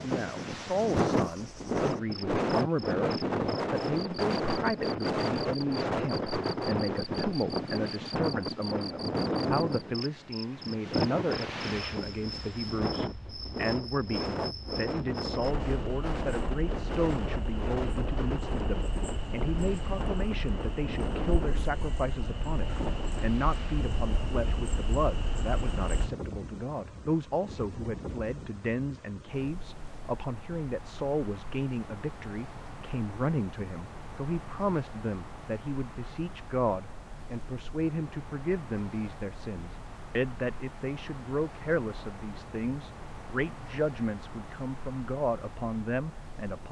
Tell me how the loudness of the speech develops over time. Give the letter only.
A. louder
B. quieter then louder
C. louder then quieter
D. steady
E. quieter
D.